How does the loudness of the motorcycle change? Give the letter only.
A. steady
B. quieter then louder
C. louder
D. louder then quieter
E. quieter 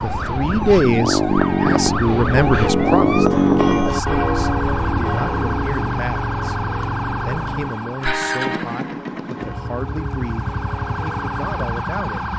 E.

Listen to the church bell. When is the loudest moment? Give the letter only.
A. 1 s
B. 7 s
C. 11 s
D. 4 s
D.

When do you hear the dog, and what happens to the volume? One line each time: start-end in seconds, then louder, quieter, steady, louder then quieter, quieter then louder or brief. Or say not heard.
not heard.